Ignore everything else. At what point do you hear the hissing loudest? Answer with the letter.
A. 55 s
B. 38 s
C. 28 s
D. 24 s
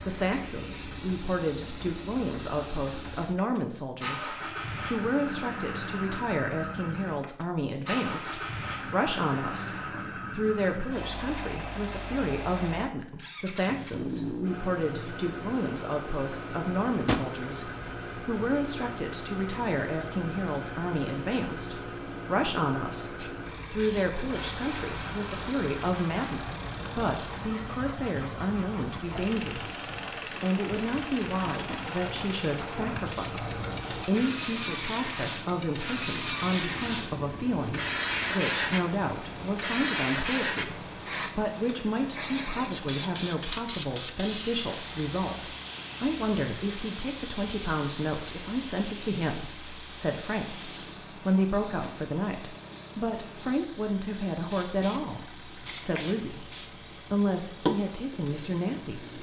B.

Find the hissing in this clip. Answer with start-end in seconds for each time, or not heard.
23.1-59.1.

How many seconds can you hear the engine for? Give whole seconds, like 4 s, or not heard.
59 s.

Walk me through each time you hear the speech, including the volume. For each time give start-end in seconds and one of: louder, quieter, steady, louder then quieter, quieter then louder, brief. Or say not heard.
0.1-59.1 steady.